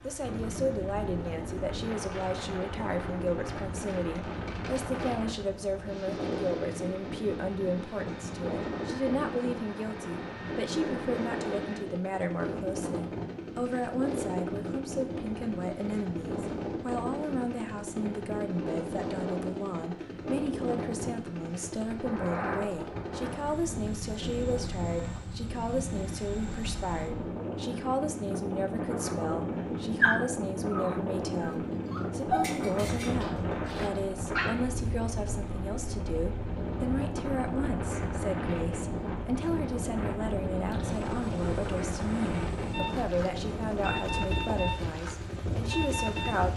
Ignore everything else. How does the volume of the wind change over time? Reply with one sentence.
The volume of the wind stays about the same.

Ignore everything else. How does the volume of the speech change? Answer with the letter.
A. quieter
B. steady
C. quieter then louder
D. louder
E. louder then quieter
B.